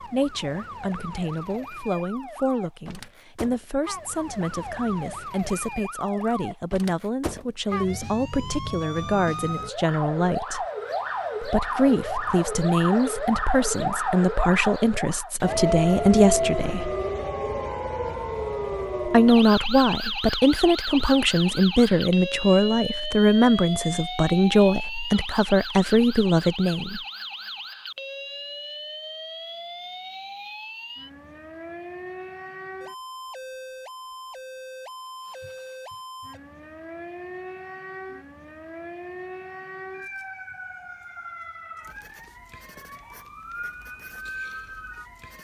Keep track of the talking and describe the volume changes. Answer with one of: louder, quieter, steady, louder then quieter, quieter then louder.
louder.